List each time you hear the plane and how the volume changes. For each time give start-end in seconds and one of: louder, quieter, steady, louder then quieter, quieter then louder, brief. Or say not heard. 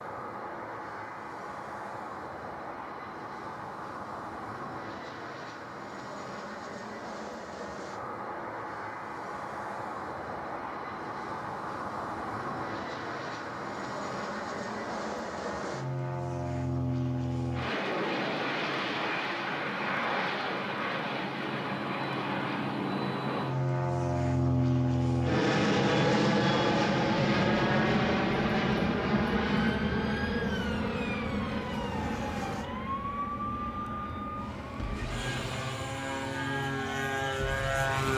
0.0-38.1 louder then quieter.